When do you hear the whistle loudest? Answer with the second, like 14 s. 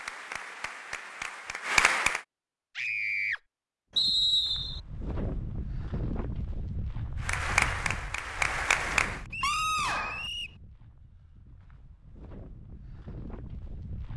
4 s.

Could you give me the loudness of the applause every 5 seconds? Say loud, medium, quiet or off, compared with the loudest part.
loud, loud, off.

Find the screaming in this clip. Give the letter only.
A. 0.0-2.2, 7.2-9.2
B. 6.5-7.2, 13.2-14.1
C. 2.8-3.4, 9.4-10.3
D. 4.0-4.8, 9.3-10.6
C.